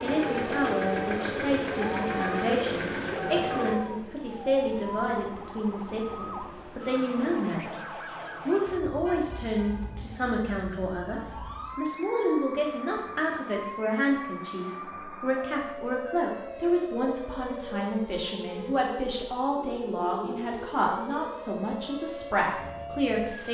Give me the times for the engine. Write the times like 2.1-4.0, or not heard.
0.0-3.8.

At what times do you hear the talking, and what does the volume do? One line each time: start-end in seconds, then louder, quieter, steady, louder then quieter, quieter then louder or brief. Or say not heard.
0.0-7.8 steady
8.4-23.4 steady.